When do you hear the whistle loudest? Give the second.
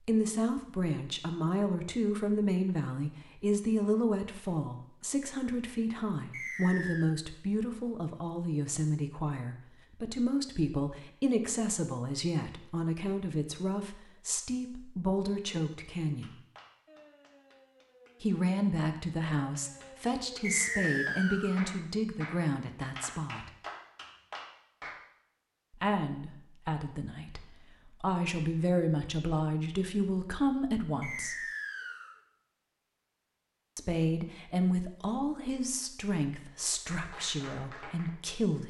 21 s.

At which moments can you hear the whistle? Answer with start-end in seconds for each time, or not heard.
6.3-7.2, 20.4-21.6, 31.0-32.1.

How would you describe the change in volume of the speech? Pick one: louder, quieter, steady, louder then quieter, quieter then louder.
steady.